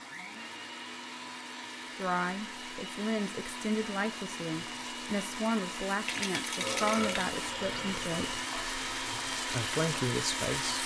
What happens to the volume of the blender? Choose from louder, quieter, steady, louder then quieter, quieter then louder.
louder.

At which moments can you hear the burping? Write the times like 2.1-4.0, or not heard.
6.6-8.2.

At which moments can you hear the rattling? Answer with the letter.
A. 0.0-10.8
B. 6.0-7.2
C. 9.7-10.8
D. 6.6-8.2
B.